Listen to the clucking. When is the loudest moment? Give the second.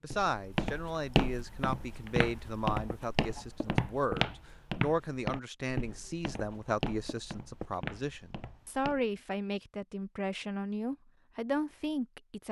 4 s.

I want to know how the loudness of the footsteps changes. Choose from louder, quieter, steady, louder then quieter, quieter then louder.
quieter.